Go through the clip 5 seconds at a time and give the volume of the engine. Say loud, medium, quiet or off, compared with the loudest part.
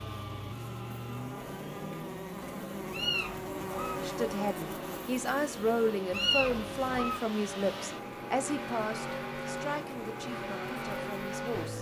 medium, loud, loud.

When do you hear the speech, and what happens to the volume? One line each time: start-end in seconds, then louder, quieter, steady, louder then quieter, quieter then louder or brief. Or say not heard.
4.0-11.7 quieter.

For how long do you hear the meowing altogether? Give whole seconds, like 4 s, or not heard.
2 s.